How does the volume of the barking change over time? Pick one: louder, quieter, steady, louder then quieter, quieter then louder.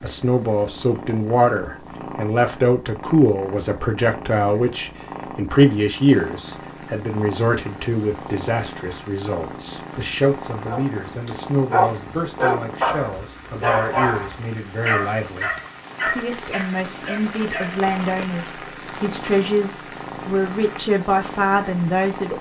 quieter.